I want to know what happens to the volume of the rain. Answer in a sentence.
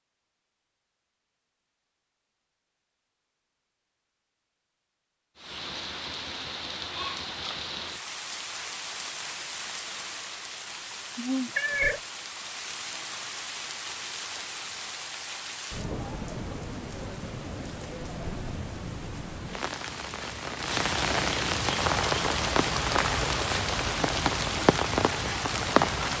The loudness of the rain goes up.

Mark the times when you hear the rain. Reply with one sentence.
The rain can be heard from 5.3 to 26.1 s.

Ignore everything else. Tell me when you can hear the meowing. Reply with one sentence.
You can hear the meowing from 11.6 to 12.0 s.